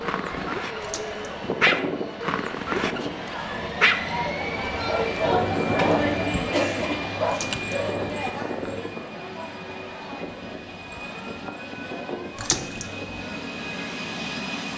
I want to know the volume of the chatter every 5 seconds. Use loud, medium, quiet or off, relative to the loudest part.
medium, loud, quiet.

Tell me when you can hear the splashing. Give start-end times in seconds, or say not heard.
0.8-1.3, 7.2-7.7, 12.3-12.8.